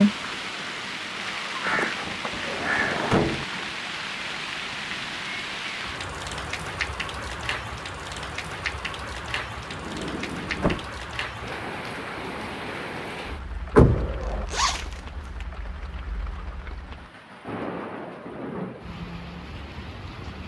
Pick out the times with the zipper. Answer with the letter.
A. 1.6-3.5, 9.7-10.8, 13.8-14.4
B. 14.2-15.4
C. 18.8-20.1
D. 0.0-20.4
B.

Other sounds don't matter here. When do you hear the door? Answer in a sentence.
You can hear the door from 1.6 to 3.5 s, from 9.7 to 10.8 s and from 13.8 to 14.4 s.